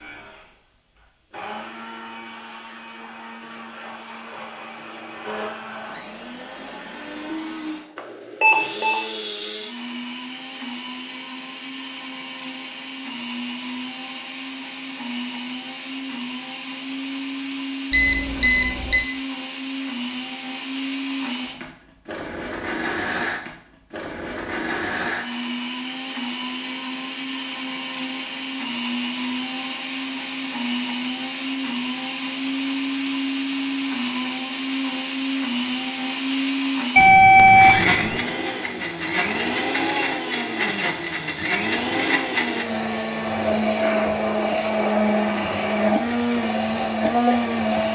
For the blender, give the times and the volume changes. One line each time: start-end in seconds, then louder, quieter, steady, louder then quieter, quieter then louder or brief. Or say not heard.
0.0-47.8 louder.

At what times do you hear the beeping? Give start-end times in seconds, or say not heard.
8.0-8.9, 17.9-19.1, 37.0-38.2.